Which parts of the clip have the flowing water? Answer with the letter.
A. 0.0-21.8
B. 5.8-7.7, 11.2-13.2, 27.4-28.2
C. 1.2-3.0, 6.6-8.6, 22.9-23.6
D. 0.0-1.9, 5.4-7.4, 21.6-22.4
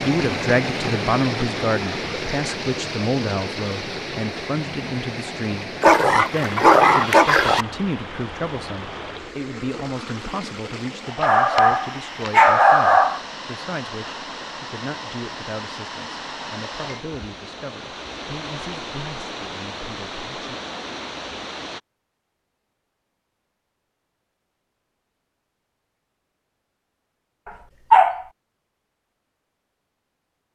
A.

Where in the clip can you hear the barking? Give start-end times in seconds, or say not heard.
5.8-7.7, 11.2-13.2, 27.4-28.2.